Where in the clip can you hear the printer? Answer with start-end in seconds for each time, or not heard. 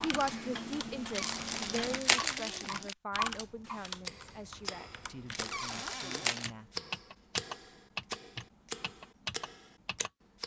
not heard.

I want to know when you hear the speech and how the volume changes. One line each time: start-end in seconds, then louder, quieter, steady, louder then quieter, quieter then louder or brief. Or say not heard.
0.0-7.0 quieter.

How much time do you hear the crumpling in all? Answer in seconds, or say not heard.
3 s.